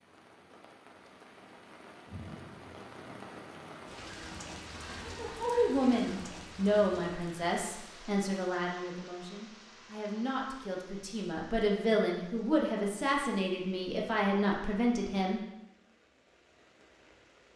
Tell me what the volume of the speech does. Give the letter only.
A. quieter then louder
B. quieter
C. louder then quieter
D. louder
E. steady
A.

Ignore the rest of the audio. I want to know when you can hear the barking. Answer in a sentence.
The barking can't be heard in this clip.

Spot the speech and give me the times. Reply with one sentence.
The speech can be heard from 5.0 to 15.4 s.